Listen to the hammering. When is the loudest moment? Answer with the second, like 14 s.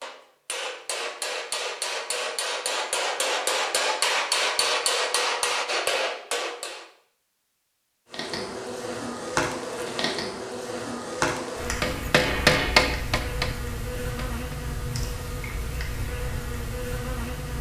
13 s.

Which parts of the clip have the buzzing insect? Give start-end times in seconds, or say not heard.
8.1-17.5.